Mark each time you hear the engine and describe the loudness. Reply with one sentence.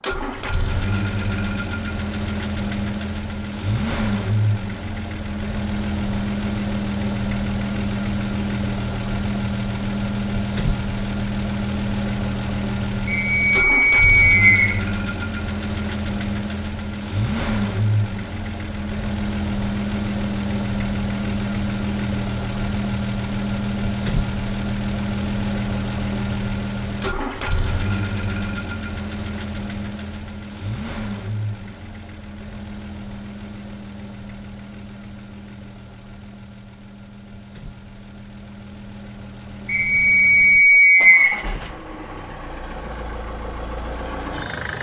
The engine can be heard from 0.0 to 44.7 s, getting quieter.